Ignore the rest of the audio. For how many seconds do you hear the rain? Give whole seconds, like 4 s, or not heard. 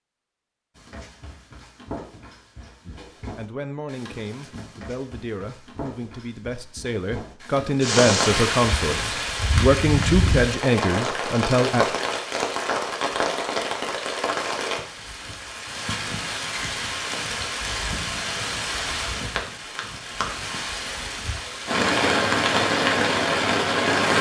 16 s.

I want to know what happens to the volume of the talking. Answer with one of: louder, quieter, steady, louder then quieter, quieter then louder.
louder.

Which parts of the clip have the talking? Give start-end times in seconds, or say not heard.
2.9-11.8.